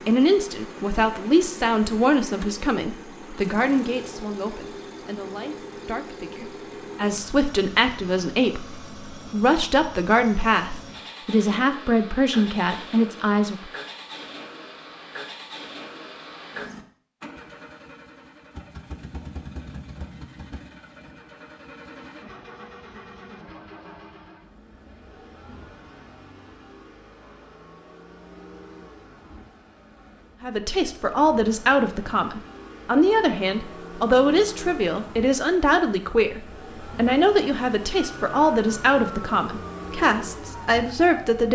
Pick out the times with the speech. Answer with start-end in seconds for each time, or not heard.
0.1-13.7, 30.4-41.5.